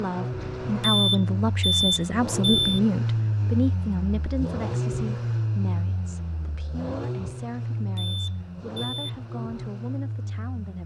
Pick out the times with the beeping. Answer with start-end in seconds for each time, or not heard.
0.8-2.8, 8.0-9.2.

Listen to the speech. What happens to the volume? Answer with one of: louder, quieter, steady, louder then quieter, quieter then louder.
quieter.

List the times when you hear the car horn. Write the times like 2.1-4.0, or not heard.
not heard.